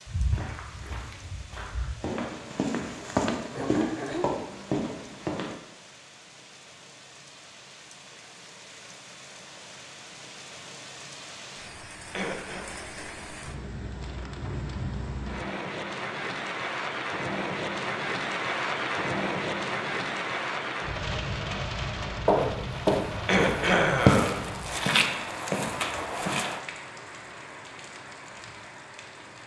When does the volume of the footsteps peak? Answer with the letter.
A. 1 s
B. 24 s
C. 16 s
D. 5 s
B.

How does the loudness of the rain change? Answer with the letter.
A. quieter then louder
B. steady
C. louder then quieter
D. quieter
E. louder
C.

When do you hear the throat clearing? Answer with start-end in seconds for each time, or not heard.
3.5-4.3, 12.1-12.7, 23.2-24.4.